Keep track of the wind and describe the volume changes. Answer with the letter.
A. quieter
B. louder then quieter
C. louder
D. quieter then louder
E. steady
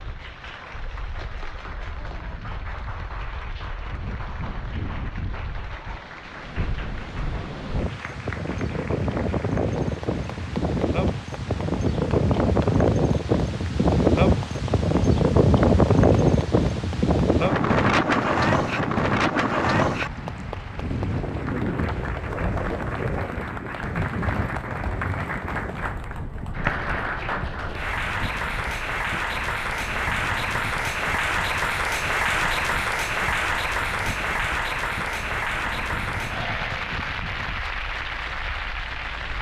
B.